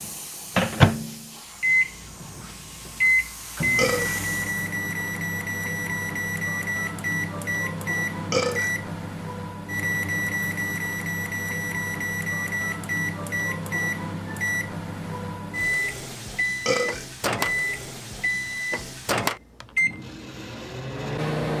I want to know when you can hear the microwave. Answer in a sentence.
You can hear the microwave from 0.0 to 21.5 s.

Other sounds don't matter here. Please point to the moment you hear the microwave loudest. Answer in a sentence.
The loudest moment of the microwave is at 1 second.